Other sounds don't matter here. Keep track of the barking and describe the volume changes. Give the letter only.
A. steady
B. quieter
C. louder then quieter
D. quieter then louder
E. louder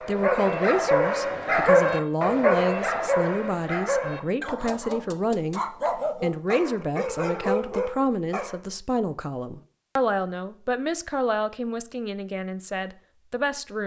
B.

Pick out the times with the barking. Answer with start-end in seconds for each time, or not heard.
0.0-8.6.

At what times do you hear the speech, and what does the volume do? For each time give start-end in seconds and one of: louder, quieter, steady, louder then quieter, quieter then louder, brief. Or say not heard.
0.0-13.8 steady.